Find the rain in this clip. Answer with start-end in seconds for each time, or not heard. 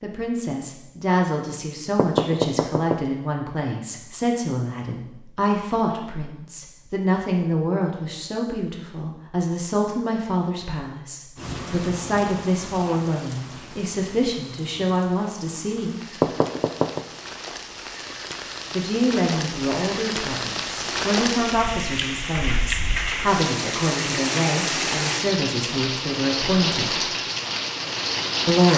11.3-28.7.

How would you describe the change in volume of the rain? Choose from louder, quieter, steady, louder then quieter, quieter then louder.
louder.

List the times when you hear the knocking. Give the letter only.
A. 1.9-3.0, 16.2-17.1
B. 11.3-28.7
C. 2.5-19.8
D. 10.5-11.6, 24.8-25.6
A.